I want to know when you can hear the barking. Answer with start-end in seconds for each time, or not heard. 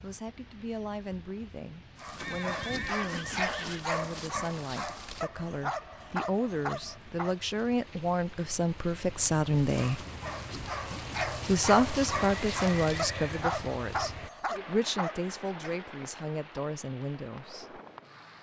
2.0-7.3, 9.6-15.8.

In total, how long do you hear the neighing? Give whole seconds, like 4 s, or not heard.
3 s.